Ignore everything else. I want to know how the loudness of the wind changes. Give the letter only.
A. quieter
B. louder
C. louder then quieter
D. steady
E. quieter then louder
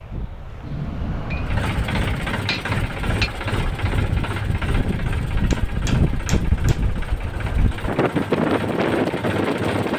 B.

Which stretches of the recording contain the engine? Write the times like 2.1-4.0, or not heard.
1.4-9.9.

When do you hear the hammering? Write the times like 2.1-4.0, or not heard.
0.6-3.3, 5.5-6.9.